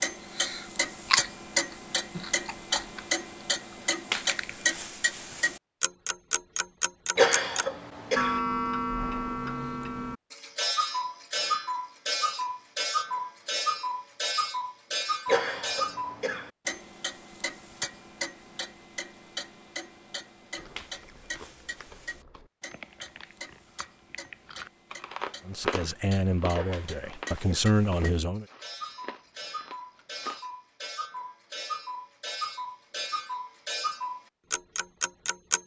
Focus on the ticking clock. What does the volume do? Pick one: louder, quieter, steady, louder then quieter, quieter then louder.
quieter then louder.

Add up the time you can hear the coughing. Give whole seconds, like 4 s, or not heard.
4 s.